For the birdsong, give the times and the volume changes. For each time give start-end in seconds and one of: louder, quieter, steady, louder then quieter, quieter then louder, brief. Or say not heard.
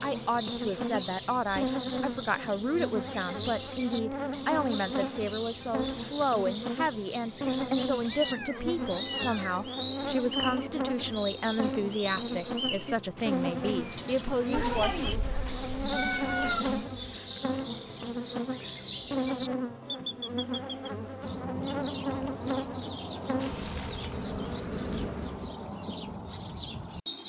0.0-27.2 steady.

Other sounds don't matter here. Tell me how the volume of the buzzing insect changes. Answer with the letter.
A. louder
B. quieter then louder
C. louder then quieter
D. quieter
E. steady
E.